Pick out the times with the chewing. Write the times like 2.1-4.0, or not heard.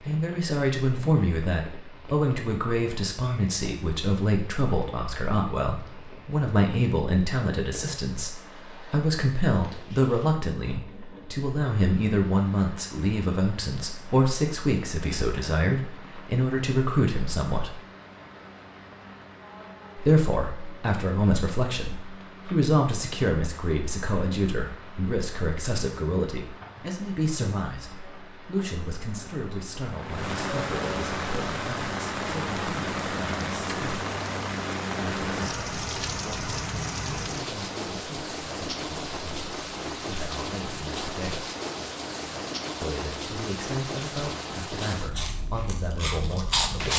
45.0-46.9.